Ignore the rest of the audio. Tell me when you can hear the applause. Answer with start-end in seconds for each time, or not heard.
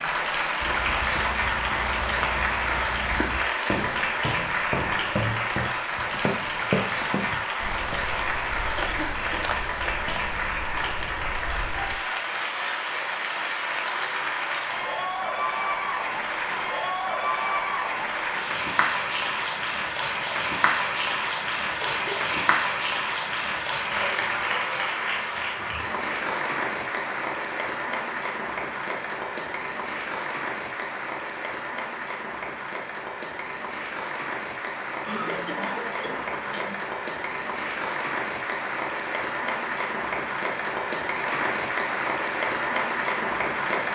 0.0-43.8.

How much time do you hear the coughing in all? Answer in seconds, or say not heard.
3 s.